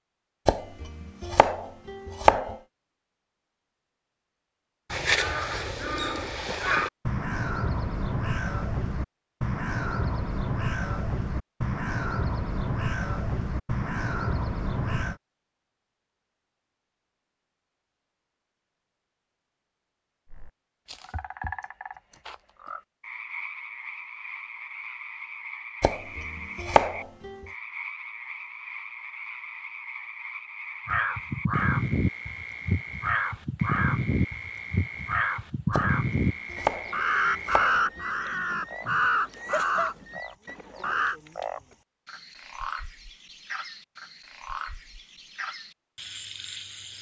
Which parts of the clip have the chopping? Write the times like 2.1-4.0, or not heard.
0.5-2.5, 25.8-27.4, 35.7-38.0.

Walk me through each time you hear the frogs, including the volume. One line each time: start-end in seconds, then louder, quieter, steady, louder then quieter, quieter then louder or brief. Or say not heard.
20.2-46.9 steady.